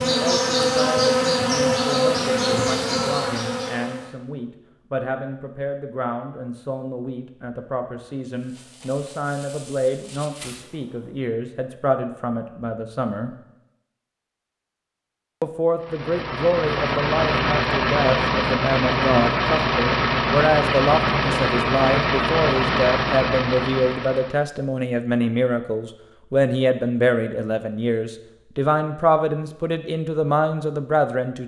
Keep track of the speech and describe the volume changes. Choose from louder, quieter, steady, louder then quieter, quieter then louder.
louder.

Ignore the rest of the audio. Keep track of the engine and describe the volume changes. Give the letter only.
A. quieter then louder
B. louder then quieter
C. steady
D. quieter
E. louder
C.